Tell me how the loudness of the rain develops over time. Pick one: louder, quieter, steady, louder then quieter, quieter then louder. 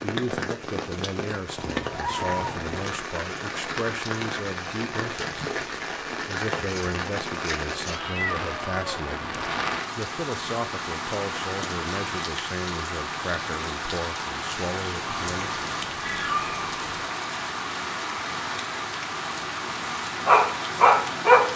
steady.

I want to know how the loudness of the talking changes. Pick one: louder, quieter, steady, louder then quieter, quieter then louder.
steady.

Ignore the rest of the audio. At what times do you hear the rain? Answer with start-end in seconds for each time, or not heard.
0.0-21.5.